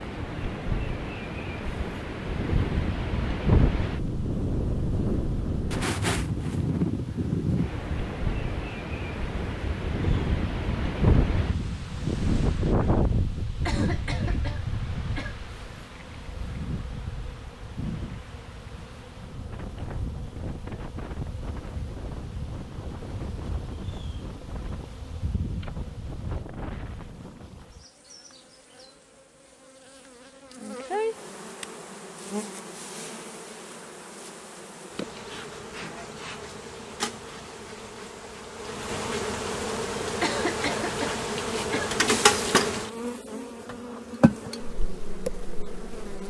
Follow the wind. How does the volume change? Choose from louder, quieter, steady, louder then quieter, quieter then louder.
quieter.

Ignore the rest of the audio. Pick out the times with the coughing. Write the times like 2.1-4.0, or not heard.
13.7-15.4, 40.2-42.0.